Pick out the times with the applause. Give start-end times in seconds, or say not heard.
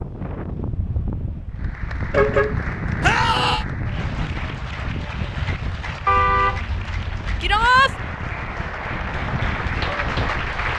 1.5-10.7.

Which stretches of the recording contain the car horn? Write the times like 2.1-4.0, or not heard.
2.1-3.5, 6.0-7.7.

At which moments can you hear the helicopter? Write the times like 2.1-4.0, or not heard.
not heard.